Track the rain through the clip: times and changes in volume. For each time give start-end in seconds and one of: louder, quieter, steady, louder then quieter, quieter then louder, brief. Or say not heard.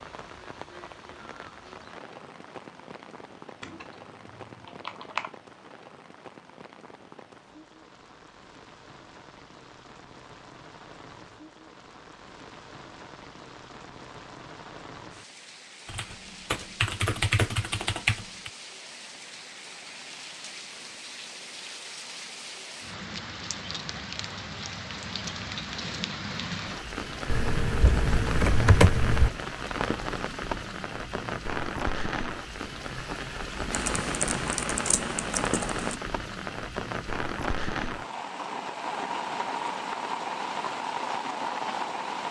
0.0-42.2 louder.